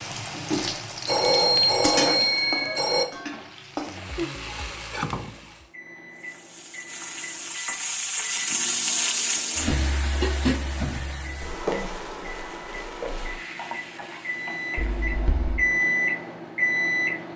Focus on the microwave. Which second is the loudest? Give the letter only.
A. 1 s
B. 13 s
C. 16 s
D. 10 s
C.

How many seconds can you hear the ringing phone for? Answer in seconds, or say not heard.
3 s.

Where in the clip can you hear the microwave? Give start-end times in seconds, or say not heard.
5.7-17.3.